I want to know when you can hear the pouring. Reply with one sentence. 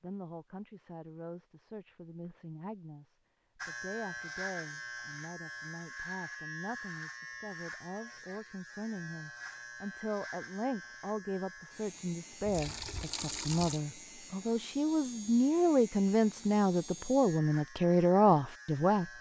You can hear the pouring from 12.4 to 13.8 s.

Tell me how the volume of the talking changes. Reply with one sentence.
The loudness of the talking goes up.